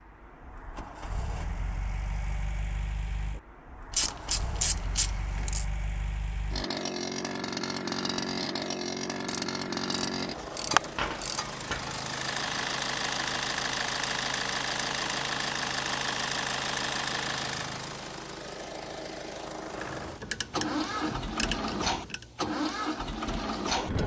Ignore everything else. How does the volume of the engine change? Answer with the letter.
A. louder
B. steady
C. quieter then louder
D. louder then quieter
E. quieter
A.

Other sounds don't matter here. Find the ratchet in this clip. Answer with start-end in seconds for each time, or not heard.
3.9-5.7, 9.2-12.0, 19.8-22.2.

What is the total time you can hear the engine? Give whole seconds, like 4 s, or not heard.
24 s.